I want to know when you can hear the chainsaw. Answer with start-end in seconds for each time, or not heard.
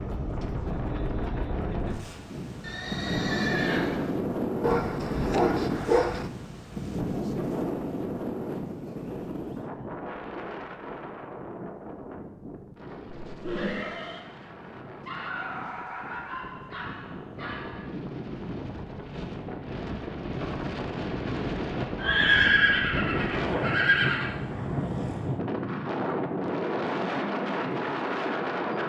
not heard.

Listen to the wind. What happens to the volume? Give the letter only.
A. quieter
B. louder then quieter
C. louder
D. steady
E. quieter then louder
E.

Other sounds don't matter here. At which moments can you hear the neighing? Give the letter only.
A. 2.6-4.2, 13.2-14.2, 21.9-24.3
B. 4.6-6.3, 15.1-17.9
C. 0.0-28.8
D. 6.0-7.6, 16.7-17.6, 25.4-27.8
A.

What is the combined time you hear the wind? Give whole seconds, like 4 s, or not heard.
29 s.